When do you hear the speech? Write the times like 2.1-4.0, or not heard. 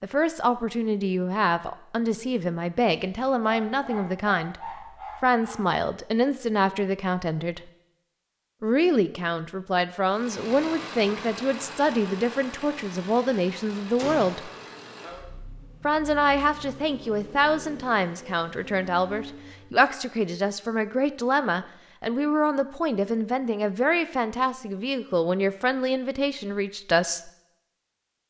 0.0-7.6, 8.6-14.5, 15.8-27.3.